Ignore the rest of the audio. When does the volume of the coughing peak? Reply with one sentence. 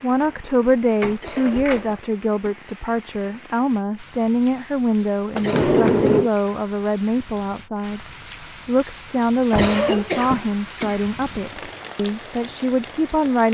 The volume of the coughing peaks at 10 seconds.